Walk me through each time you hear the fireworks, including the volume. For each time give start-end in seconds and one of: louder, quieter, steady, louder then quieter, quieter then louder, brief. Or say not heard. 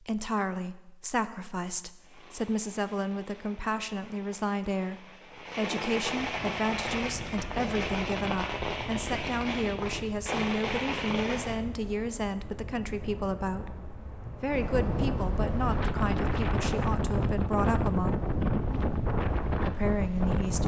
1.9-11.6 louder.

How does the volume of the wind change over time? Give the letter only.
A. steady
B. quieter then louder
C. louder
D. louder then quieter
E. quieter
C.